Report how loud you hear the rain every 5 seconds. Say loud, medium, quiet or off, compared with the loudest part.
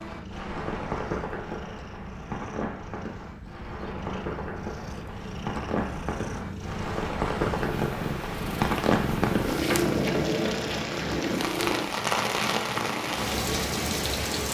medium, loud, loud.